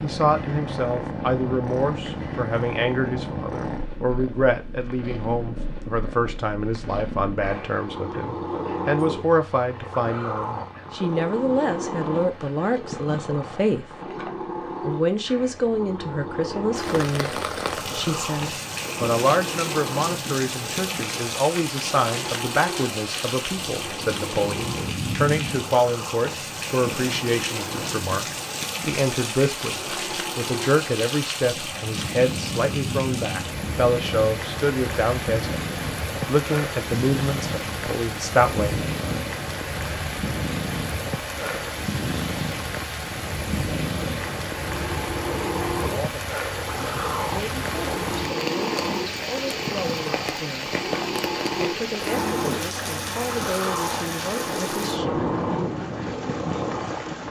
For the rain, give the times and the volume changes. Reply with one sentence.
You can hear the rain from 16.8 to 57.2 s, at a steady volume.